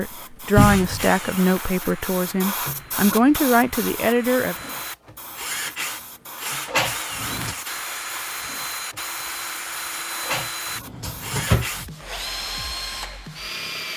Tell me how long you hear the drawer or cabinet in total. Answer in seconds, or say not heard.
3 s.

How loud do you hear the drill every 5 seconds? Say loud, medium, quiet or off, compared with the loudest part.
medium, loud, loud.